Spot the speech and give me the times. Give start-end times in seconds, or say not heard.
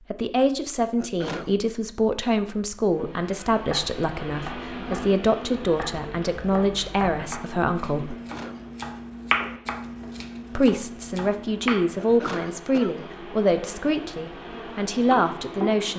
0.1-8.2, 10.6-15.9.